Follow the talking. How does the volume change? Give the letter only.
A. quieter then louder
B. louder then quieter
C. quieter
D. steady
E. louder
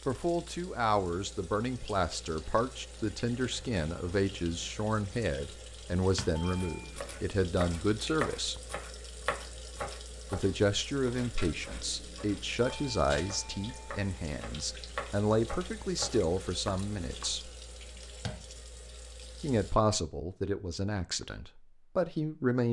D.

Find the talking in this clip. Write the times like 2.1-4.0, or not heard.
0.1-8.6, 10.3-17.5, 19.4-22.6.